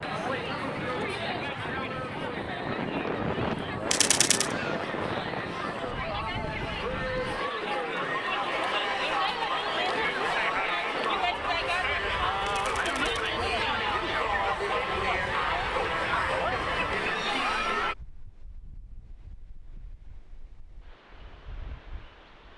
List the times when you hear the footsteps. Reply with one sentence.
You can't hear the footsteps here.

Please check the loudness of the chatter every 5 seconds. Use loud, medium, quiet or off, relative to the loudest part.
medium, loud, loud, loud, off.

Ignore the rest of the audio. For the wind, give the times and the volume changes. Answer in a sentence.
The wind can be heard from 0.0 to 22.5 s, getting quieter.